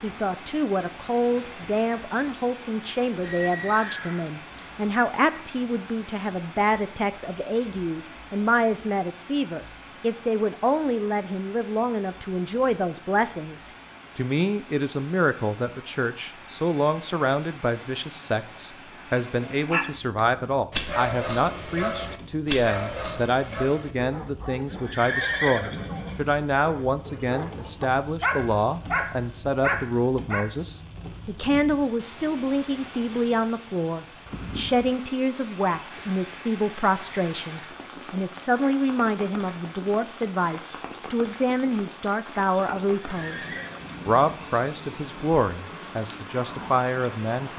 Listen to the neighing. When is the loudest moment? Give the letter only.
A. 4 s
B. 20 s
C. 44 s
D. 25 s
D.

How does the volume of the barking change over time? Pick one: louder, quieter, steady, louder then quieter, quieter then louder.
quieter then louder.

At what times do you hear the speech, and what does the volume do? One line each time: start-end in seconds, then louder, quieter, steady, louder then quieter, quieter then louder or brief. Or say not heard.
0.0-47.5 steady.